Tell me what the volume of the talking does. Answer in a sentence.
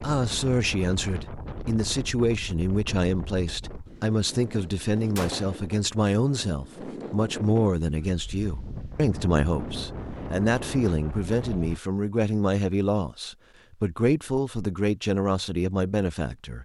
The loudness of the talking stays about the same.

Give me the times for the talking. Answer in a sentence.
The talking can be heard from 0.0 to 16.5 s.